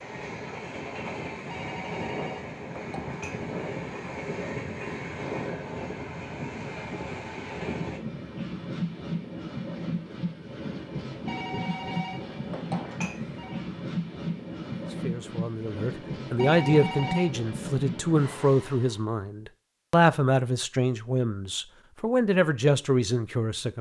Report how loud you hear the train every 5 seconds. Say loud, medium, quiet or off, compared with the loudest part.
loud, loud, loud, loud, off.